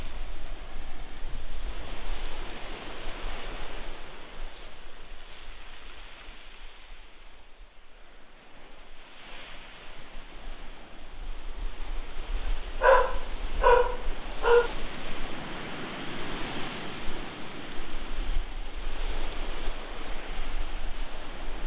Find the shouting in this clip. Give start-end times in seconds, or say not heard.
not heard.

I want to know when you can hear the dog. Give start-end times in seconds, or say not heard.
12.8-14.7.